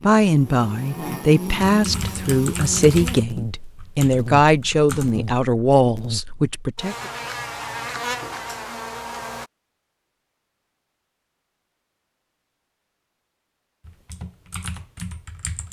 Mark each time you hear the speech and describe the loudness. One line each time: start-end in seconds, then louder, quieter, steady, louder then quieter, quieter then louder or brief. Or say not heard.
0.0-7.0 steady.